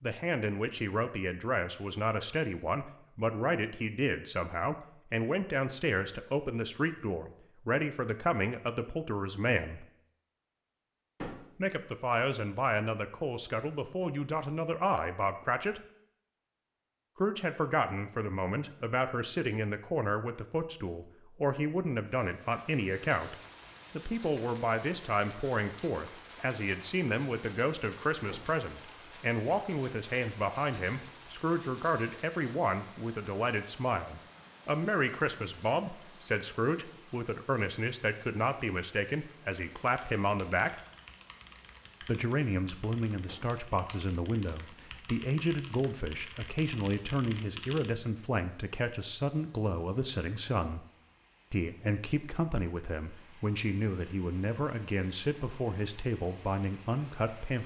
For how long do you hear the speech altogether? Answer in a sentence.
The speech can be heard for 52 seconds in total.